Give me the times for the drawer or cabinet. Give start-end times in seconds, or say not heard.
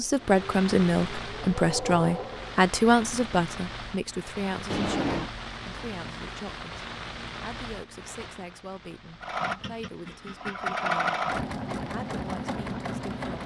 4.7-5.3.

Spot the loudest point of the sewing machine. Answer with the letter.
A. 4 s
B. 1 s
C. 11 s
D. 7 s
C.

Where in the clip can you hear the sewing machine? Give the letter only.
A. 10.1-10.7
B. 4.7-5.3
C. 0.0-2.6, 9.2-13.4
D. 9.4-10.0
C.